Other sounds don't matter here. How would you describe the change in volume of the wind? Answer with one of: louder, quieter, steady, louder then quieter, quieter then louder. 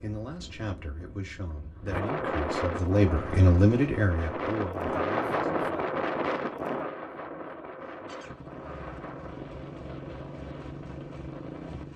louder then quieter.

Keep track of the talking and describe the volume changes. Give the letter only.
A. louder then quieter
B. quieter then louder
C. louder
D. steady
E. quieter
A.